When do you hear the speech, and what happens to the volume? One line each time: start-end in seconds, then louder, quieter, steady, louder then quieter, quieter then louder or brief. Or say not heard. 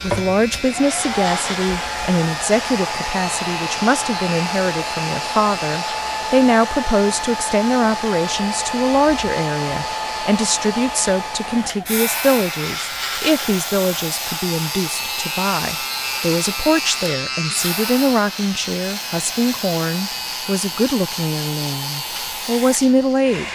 0.0-23.5 steady.